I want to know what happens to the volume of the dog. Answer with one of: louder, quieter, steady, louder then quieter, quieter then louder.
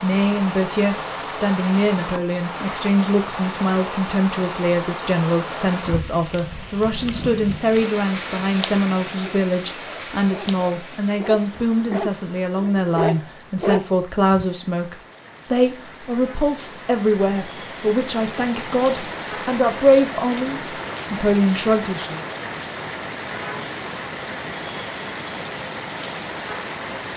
louder.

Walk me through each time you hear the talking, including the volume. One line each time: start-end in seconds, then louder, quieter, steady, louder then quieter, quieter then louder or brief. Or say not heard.
0.0-22.2 steady.